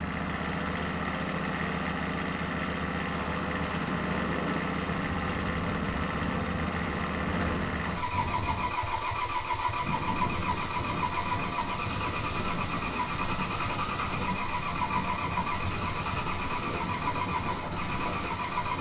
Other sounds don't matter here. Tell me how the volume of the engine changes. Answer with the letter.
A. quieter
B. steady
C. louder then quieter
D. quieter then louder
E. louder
B.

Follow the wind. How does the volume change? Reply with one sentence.
The loudness of the wind stays about the same.